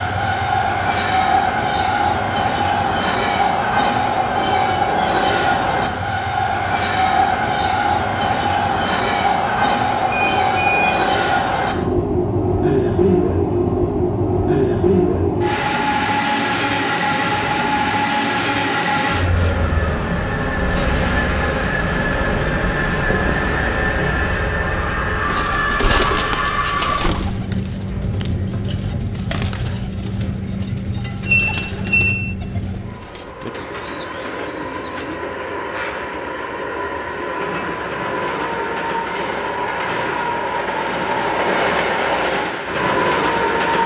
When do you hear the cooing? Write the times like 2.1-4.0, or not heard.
25.2-35.2.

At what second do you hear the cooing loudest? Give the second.
26 s.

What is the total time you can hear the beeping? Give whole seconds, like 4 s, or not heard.
2 s.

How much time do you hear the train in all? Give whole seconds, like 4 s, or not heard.
44 s.